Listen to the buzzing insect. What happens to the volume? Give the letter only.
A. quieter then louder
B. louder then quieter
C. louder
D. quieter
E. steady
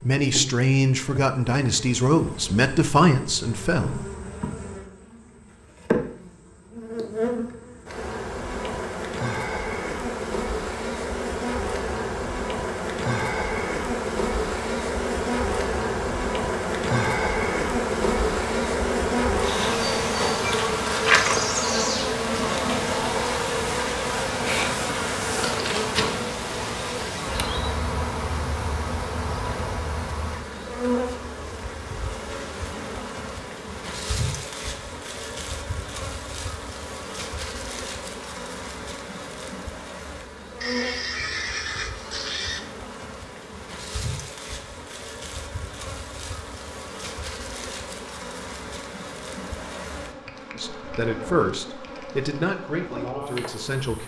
B.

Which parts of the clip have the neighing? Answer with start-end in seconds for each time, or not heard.
40.6-42.6.